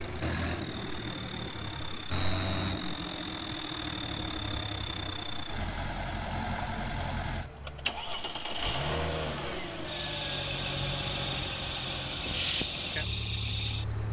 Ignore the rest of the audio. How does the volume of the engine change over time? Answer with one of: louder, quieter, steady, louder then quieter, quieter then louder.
steady.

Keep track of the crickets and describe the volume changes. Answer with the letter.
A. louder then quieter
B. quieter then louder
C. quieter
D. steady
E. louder
E.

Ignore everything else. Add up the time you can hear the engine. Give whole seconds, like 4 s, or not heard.
14 s.